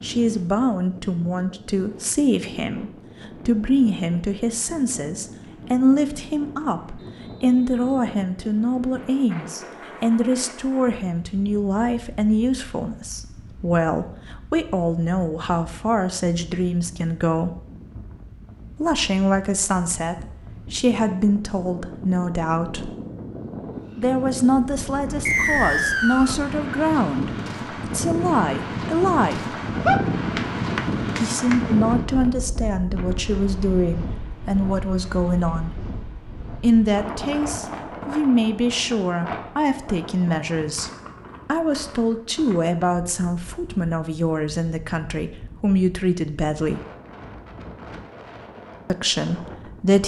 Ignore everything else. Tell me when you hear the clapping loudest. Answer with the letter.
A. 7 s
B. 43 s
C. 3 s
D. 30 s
D.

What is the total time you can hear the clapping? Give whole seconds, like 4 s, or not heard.
2 s.